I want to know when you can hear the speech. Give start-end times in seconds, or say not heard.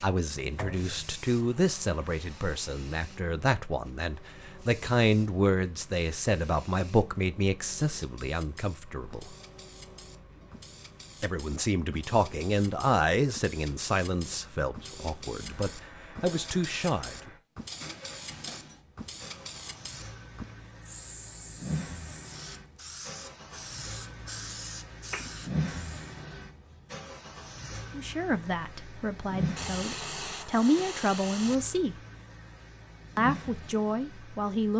0.0-9.3, 11.2-17.1, 27.9-31.9, 33.1-34.7.